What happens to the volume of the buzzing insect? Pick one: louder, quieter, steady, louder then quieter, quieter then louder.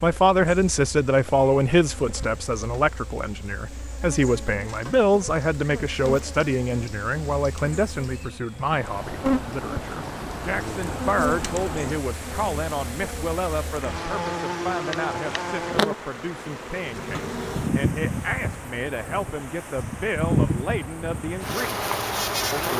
louder.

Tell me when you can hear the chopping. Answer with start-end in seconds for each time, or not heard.
not heard.